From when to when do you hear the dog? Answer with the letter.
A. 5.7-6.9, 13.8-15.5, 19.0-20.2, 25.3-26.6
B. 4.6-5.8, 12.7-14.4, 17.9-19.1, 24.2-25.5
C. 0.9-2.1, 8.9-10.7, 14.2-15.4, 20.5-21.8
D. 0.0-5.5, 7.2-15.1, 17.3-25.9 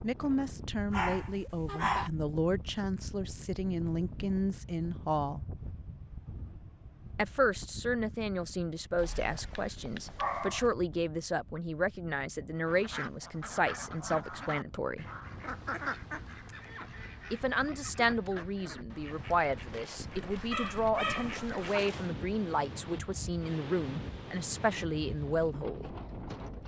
C.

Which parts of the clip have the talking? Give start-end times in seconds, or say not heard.
0.0-5.5, 7.2-15.1, 17.3-25.9.